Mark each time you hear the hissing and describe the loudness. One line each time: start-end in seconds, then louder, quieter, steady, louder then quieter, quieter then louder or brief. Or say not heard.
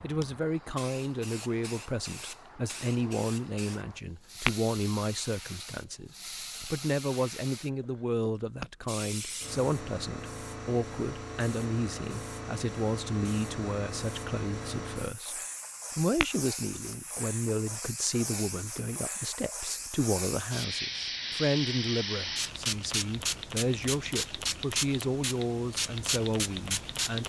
0.0-27.2 louder.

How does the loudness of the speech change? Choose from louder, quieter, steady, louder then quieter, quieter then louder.
steady.